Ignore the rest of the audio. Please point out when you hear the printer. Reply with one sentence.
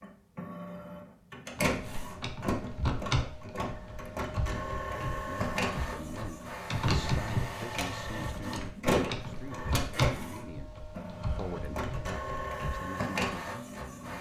The printer can be heard from 0.0 to 14.1 s.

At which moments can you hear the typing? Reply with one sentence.
The typing can be heard from 1.6 to 12.8 s.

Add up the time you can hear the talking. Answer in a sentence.
The talking can be heard for 10 seconds in total.